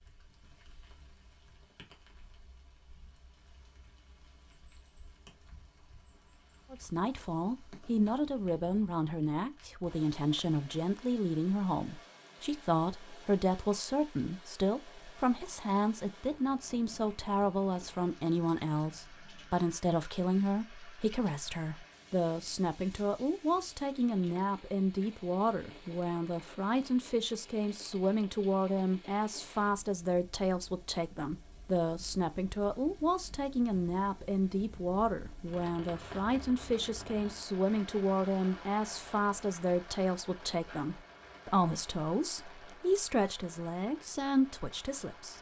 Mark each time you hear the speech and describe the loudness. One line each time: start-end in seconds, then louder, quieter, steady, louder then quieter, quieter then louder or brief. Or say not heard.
6.7-45.3 steady.